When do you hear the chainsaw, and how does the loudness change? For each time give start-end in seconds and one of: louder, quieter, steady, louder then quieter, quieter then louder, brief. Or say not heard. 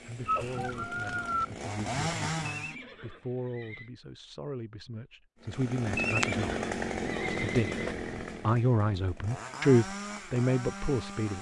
0.0-2.8 brief
5.4-11.3 quieter.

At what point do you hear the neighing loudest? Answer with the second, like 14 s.
6 s.